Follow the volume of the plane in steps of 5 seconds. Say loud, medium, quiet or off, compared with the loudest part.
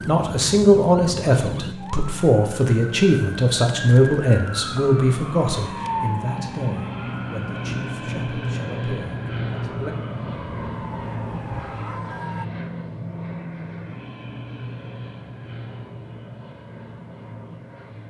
medium, loud, loud, medium.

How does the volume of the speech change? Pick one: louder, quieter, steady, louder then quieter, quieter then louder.
quieter.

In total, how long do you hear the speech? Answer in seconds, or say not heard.
10 s.